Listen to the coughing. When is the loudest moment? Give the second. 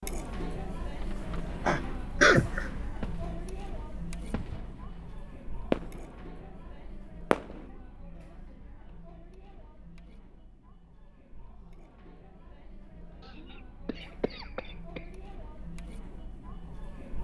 2 s.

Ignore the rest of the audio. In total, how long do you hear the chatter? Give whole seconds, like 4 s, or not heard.
17 s.